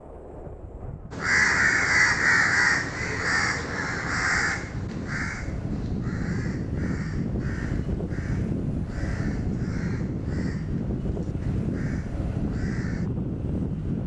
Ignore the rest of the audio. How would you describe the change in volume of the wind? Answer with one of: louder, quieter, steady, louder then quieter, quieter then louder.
louder.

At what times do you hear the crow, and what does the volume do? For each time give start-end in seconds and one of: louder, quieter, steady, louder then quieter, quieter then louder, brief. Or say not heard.
1.1-13.1 quieter.